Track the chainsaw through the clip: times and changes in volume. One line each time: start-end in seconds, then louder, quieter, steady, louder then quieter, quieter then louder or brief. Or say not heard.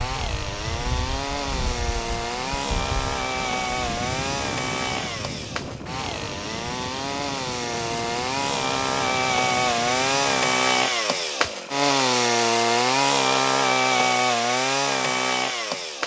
0.0-16.0 louder.